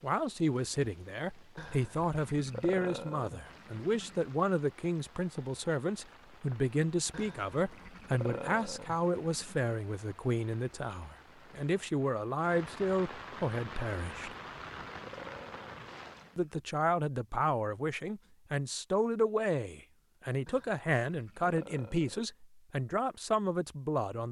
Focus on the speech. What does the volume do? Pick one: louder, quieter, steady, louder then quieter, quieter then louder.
steady.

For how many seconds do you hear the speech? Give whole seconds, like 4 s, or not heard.
22 s.